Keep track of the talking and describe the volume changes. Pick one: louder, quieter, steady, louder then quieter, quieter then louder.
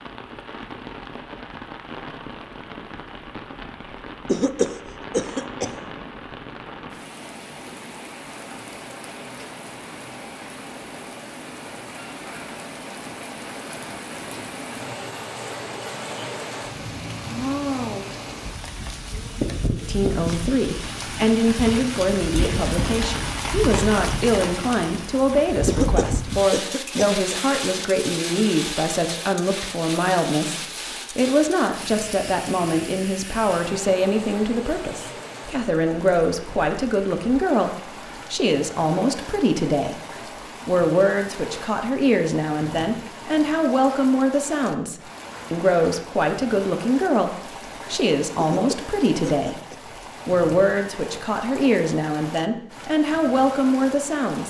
steady.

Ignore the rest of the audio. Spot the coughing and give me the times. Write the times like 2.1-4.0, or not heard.
4.2-5.8, 25.6-27.4, 48.4-49.8.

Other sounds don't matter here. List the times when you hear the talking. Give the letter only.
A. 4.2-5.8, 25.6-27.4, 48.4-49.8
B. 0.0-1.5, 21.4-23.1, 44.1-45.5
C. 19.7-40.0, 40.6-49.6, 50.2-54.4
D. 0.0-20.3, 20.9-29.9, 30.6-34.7
C.